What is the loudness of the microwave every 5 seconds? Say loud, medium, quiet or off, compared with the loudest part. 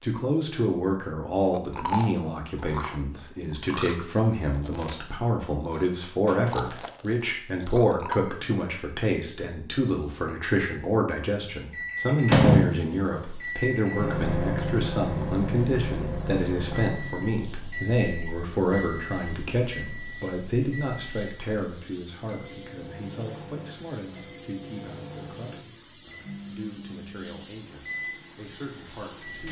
off, off, loud, medium, quiet, quiet.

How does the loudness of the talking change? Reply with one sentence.
The volume of the talking goes down.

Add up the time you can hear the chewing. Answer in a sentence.
You can hear the chewing for 7 seconds altogether.